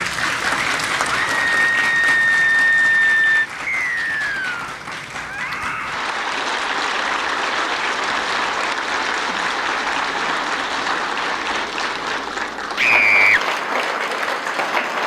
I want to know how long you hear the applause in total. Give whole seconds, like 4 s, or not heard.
15 s.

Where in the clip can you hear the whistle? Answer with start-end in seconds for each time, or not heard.
3.6-4.7.